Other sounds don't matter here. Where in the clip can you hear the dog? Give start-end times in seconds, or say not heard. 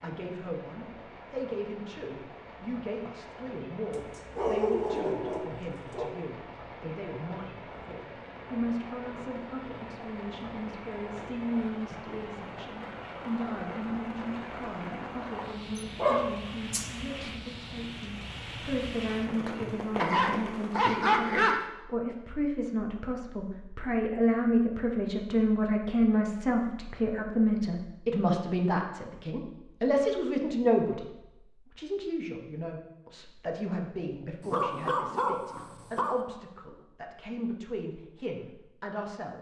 3.9-6.2, 15.8-17.3, 19.9-21.6, 34.4-36.2.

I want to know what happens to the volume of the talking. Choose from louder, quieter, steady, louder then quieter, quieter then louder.
louder then quieter.